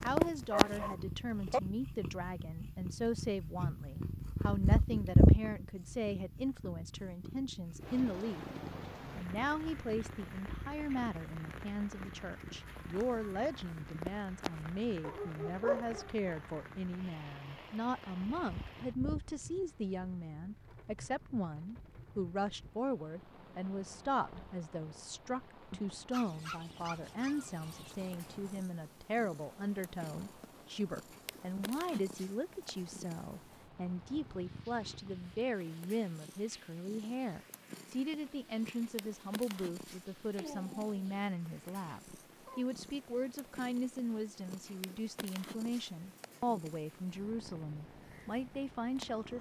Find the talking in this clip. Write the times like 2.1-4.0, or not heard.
0.0-8.4, 9.2-49.3.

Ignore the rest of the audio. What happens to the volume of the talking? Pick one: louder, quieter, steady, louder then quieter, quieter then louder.
steady.